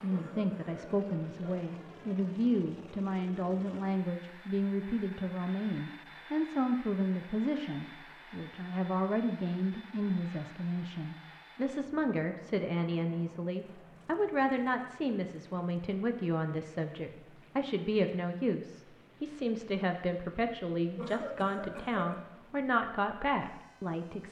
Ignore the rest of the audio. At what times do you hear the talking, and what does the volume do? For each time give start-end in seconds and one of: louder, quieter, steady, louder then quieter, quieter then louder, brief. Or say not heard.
0.0-24.2 steady.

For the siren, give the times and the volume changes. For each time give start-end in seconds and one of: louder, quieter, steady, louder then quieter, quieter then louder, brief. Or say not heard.
not heard.